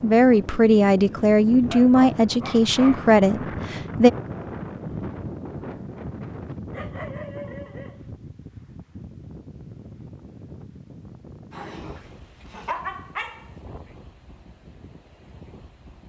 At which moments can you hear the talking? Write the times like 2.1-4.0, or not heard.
0.0-4.1.